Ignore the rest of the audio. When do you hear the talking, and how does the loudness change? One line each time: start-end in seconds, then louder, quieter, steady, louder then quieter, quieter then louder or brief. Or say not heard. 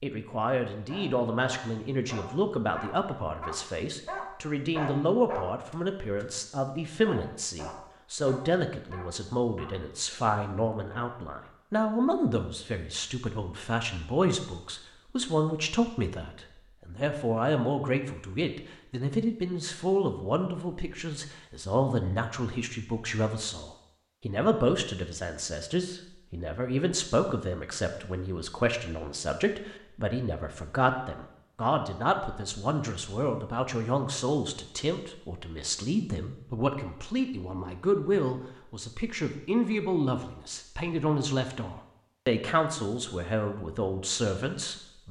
0.0-45.0 steady.